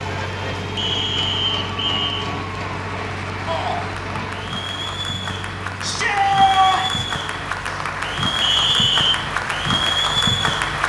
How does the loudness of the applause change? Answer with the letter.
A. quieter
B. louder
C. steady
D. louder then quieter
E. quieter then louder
B.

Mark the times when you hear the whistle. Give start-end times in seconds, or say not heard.
0.8-2.1, 8.4-9.2.